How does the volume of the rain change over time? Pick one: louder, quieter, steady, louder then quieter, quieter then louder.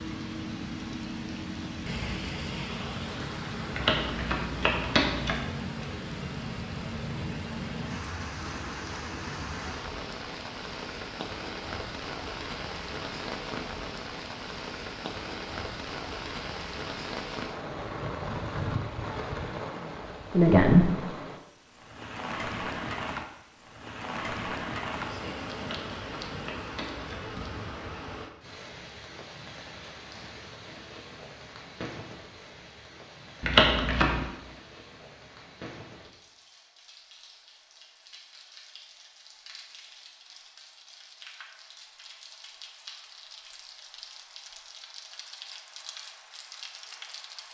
quieter.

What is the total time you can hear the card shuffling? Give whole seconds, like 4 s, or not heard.
4 s.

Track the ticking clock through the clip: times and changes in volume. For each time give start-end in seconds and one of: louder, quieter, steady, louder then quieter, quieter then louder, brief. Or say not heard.
not heard.